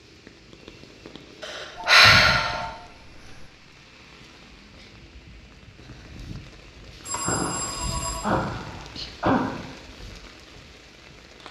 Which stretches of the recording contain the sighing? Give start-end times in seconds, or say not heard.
1.4-2.6, 7.2-9.7.